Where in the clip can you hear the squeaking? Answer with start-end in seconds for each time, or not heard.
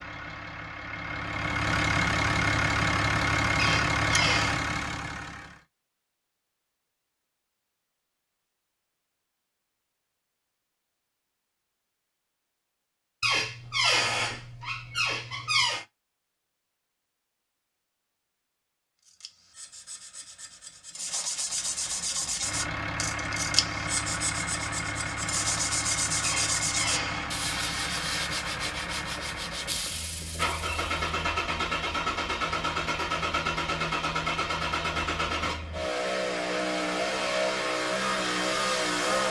3.5-4.6, 13.2-15.8, 26.2-27.3.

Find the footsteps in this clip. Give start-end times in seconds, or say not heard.
not heard.